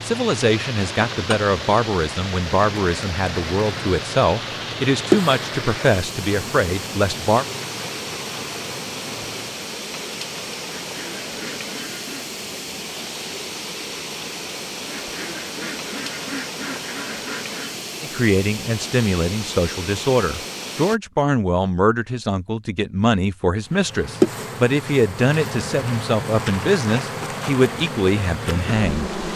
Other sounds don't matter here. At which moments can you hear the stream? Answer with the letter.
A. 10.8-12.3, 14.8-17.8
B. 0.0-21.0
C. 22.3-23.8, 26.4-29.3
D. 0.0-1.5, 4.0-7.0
B.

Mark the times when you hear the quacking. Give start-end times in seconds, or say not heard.
10.8-12.3, 14.8-17.8.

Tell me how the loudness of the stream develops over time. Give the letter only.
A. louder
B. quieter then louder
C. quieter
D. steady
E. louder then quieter
D.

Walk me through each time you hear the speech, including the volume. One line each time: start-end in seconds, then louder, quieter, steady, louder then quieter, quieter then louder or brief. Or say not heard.
0.0-7.5 steady
18.0-29.1 steady.